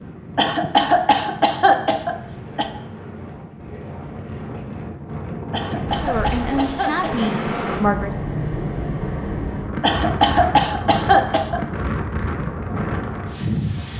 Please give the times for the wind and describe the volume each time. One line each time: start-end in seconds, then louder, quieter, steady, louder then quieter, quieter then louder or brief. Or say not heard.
0.0-13.9 louder.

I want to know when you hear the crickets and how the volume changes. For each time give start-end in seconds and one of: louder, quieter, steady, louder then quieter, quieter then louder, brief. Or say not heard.
not heard.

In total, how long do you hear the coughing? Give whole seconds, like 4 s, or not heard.
6 s.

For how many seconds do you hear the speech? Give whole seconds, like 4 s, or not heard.
2 s.